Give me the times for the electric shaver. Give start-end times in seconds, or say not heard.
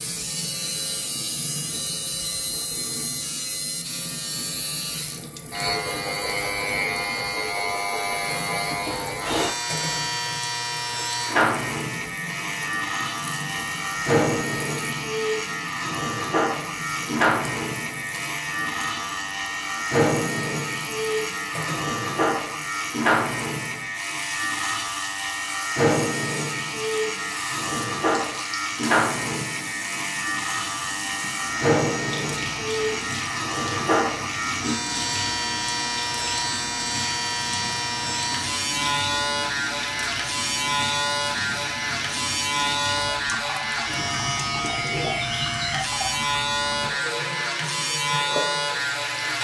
0.0-49.3.